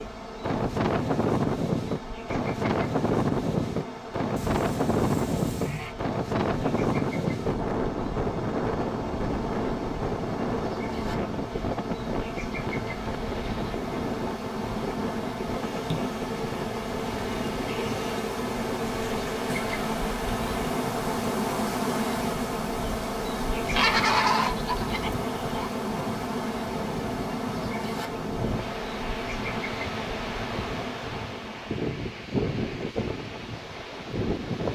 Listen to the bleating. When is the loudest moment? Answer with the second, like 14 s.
24 s.